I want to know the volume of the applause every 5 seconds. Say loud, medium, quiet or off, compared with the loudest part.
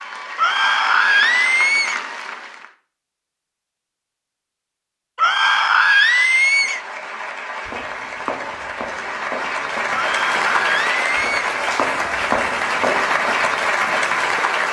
medium, medium, loud.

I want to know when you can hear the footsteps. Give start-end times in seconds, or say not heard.
7.7-14.4.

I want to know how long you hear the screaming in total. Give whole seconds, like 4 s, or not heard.
5 s.